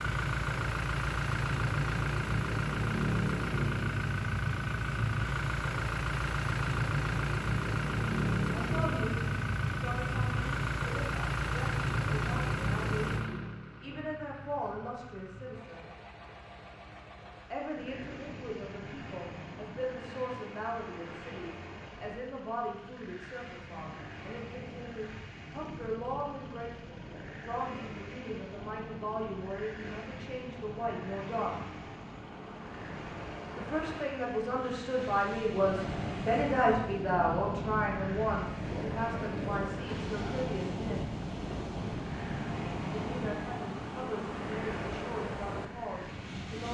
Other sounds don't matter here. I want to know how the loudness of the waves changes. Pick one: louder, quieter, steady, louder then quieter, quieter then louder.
louder.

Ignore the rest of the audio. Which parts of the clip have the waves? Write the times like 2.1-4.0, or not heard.
17.7-46.7.